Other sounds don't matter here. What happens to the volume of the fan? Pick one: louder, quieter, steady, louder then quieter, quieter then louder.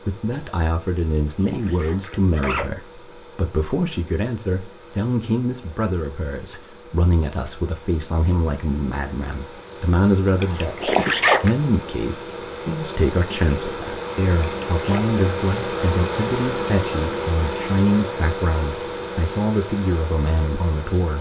louder.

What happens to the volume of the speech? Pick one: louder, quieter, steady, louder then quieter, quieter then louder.
steady.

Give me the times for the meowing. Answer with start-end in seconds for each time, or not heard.
not heard.